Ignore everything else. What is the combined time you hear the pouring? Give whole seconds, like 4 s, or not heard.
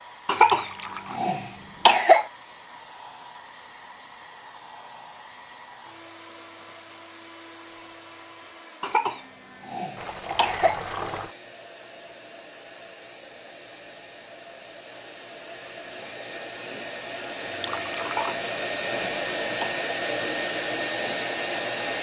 3 s.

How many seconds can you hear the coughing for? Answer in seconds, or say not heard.
6 s.